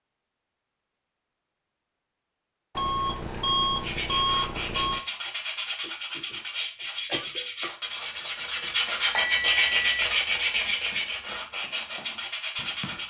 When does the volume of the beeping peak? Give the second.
4 s.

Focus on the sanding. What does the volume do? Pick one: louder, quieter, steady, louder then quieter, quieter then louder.
louder then quieter.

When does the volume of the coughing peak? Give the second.
7 s.